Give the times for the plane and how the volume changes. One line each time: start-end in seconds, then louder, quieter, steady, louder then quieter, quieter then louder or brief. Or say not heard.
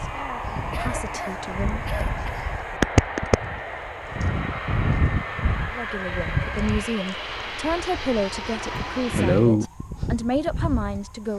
0.0-9.5 steady.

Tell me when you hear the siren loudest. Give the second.
3 s.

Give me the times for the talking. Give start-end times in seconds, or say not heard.
0.0-1.8, 5.7-11.3.